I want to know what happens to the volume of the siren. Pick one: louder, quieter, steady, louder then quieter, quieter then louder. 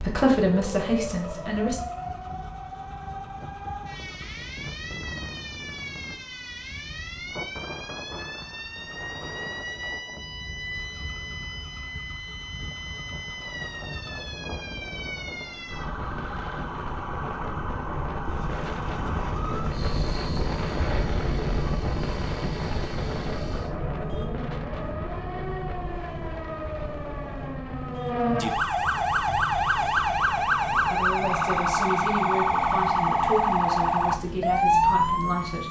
louder.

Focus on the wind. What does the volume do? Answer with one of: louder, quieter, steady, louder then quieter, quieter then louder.
louder then quieter.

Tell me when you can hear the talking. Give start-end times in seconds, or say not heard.
0.0-1.8, 30.9-35.6.